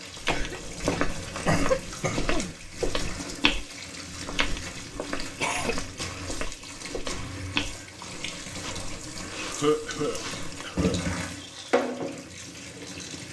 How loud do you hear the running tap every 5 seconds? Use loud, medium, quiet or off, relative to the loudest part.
medium, medium, loud.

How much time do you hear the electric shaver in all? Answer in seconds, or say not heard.
not heard.